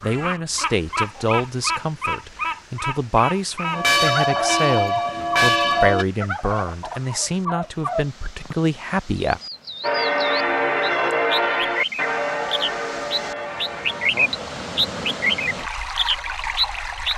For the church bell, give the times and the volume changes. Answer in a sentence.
The church bell can be heard briefly from 3.7 to 6.0 s; and from 9.8 to 14.1 s, getting quieter.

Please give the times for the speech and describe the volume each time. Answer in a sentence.
The speech can be heard from 0.0 to 9.4 s, at a steady volume.